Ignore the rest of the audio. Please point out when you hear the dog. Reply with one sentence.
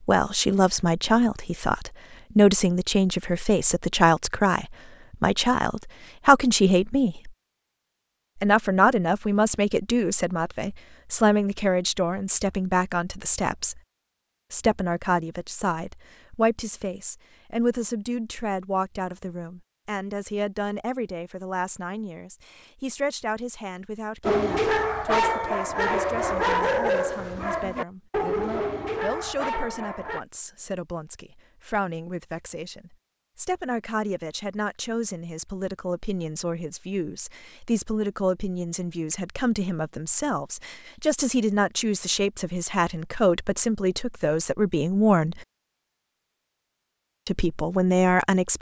The dog can be heard from 24.2 to 30.2 s.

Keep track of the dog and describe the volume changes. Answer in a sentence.
The loudness of the dog goes down.